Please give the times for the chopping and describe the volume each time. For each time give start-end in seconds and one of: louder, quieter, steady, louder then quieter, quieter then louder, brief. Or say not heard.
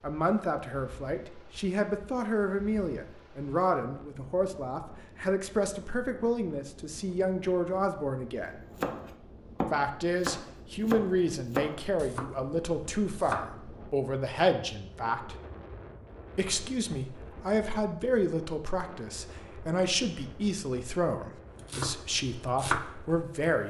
8.8-13.4 quieter
21.6-22.8 brief.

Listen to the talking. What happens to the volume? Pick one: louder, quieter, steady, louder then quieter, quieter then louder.
steady.